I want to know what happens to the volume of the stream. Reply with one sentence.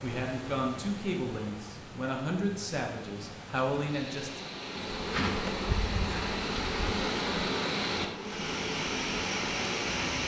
The loudness of the stream goes up.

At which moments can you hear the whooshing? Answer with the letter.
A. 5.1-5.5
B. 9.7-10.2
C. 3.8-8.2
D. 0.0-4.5
A.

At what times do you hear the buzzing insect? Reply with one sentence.
The buzzing insect can be heard from 4.5 to 10.0 s.